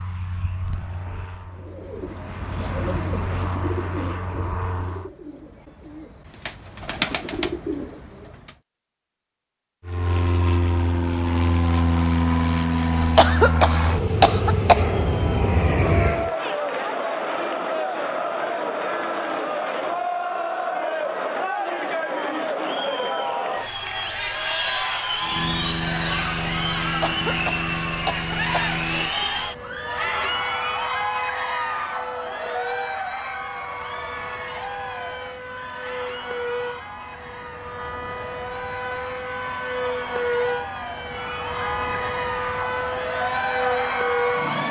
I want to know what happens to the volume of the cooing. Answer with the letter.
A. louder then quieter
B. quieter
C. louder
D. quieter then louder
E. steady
D.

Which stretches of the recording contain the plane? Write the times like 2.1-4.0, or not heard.
0.0-5.1, 9.8-16.3, 25.2-44.6.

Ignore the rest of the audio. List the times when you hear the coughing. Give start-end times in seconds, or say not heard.
13.2-14.8, 27.0-28.8.